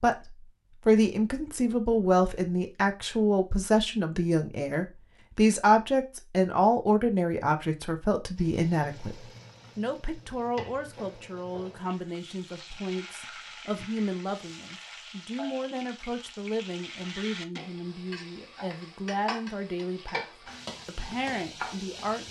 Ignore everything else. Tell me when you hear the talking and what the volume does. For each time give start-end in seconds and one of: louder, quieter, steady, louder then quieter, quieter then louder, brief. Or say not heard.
0.0-20.2 quieter
20.9-22.2 brief.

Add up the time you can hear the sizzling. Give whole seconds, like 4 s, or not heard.
14 s.